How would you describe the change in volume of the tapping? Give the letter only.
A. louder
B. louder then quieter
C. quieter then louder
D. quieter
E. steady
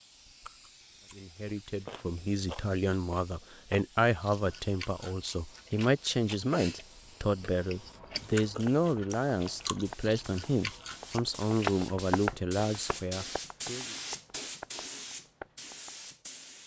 B.